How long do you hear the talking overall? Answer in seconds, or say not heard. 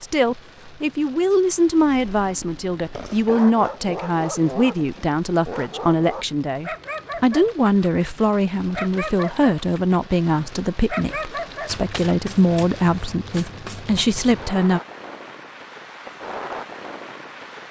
15 s.